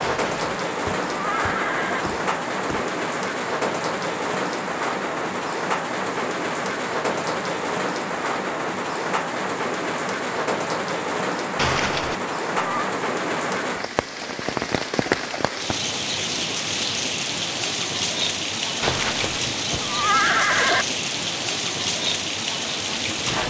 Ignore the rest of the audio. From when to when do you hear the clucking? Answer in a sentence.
The clucking can't be heard in this clip.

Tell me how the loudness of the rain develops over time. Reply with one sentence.
The loudness of the rain stays about the same.